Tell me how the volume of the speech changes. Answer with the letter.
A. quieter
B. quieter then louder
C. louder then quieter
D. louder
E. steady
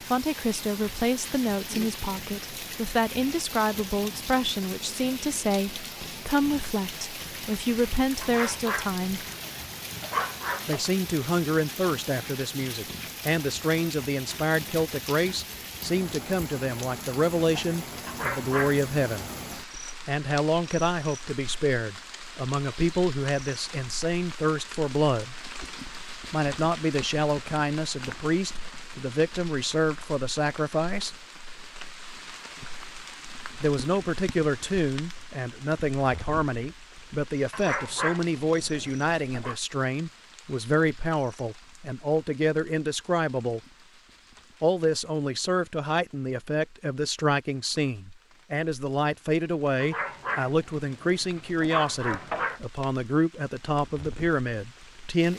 E.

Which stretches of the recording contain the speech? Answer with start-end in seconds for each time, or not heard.
0.1-9.2, 10.7-19.3, 20.1-25.4, 26.3-31.1, 33.6-43.6, 44.6-55.3.